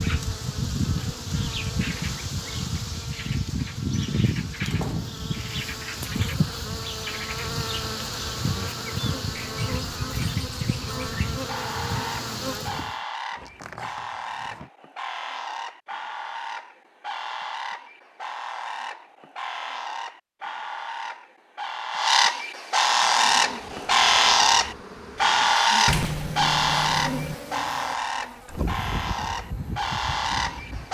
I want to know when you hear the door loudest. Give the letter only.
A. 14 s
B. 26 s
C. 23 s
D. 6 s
B.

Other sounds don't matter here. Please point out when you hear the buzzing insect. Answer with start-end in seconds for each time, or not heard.
0.0-12.9, 22.8-30.8.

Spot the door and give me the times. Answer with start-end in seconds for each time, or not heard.
4.7-5.3, 13.3-14.7, 25.9-27.4.